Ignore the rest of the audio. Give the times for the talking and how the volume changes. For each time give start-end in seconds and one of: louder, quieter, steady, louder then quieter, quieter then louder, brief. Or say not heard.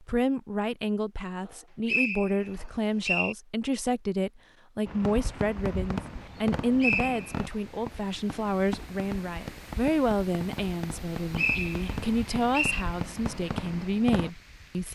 0.0-14.9 steady.